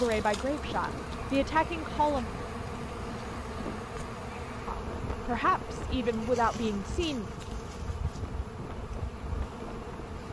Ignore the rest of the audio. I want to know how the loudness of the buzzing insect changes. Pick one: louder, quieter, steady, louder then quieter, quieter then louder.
steady.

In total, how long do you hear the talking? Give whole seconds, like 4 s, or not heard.
5 s.